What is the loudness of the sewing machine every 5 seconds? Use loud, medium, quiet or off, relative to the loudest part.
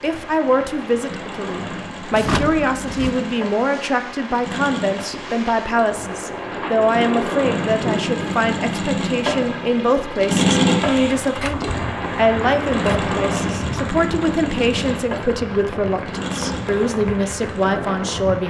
medium, medium, loud, medium.